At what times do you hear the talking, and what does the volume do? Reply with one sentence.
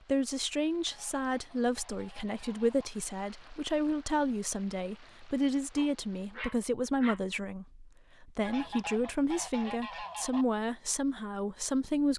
You can hear the talking from 0.1 to 12.1 s, at a steady volume.